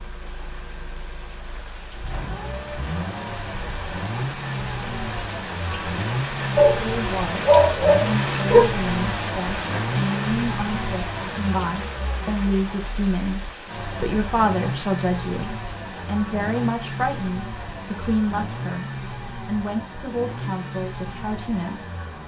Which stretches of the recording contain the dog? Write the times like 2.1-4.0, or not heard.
6.5-8.7.